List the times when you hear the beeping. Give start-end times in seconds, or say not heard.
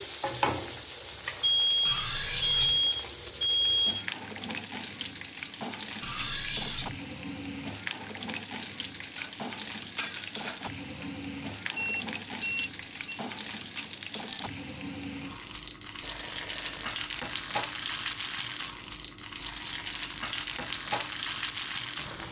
1.4-4.0, 11.8-13.2, 16.0-17.0.